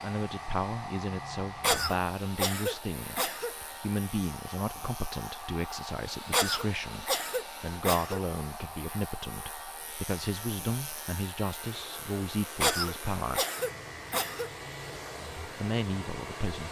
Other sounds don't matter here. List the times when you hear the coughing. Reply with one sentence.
You can hear the coughing from 1.6 to 3.5 s, from 6.3 to 8.2 s and from 12.6 to 14.5 s.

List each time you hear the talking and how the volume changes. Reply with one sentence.
The talking can be heard from 0.0 to 13.4 s, at a steady volume; and briefly from 15.3 to 16.6 s.